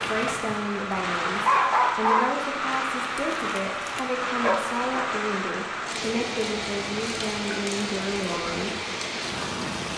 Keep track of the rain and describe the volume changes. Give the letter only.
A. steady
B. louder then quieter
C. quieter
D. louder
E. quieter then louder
A.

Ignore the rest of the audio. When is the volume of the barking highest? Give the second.
2 s.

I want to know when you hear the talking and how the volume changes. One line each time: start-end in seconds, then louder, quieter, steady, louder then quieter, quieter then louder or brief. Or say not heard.
0.1-8.8 steady.